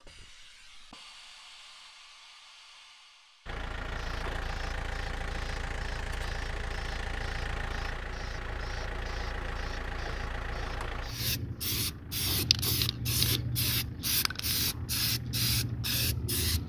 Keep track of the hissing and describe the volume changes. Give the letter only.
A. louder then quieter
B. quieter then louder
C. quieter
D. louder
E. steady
D.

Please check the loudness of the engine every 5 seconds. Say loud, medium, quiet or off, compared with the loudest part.
loud, loud, medium, quiet.